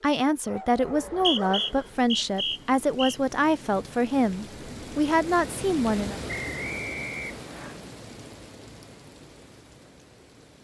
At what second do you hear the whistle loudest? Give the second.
1 s.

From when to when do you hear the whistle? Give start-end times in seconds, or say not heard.
0.8-3.1, 6.2-7.8.